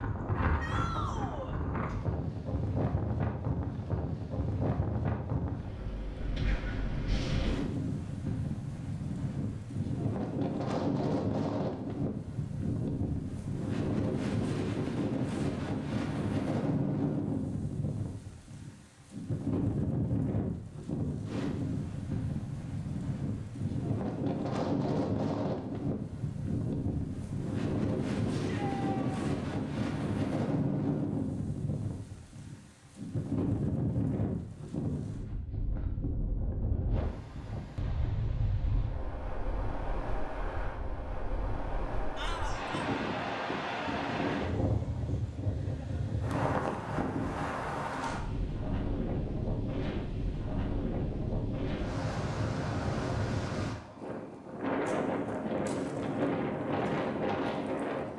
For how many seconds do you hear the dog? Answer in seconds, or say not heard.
not heard.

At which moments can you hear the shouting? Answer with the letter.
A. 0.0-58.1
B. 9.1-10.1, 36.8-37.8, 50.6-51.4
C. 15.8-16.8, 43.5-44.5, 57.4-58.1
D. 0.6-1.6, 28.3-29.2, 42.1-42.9
D.